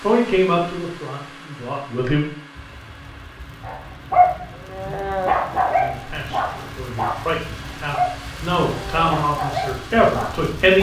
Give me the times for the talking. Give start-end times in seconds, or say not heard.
0.0-2.2, 5.8-10.7.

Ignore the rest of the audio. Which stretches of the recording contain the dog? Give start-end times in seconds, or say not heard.
3.6-10.7.